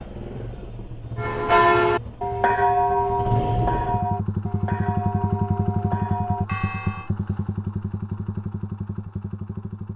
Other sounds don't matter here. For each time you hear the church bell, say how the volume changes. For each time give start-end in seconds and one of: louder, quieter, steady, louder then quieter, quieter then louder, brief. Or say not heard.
1.1-7.1 quieter.